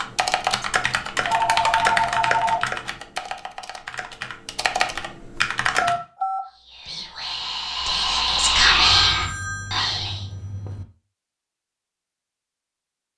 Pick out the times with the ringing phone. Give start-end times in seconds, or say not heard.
0.6-2.6, 5.8-6.4, 8.8-10.8.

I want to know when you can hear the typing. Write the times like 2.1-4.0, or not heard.
0.0-6.0.